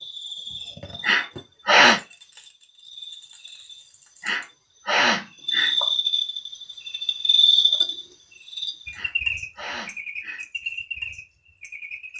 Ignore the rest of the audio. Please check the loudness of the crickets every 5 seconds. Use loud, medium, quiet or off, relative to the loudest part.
quiet, loud, medium.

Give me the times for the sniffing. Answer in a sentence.
You can hear the sniffing from 1.0 to 2.0 s, from 4.2 to 5.8 s and from 8.9 to 10.4 s.